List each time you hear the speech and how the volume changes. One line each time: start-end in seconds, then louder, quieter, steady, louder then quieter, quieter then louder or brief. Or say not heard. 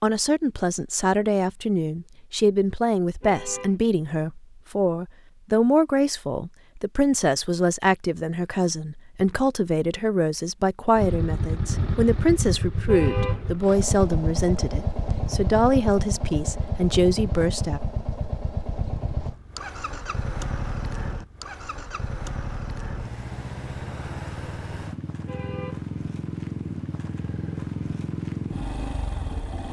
0.0-17.8 steady.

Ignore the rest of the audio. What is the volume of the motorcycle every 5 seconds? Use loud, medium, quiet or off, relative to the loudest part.
off, off, loud, loud, medium, loud.